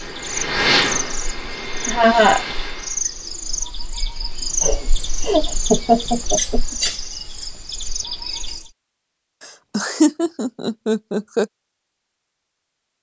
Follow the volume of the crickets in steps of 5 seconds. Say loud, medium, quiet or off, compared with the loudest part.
loud, loud, off.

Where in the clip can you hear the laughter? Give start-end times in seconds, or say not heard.
1.9-2.5, 4.6-6.9, 9.4-11.4.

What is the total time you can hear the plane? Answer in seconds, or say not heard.
3 s.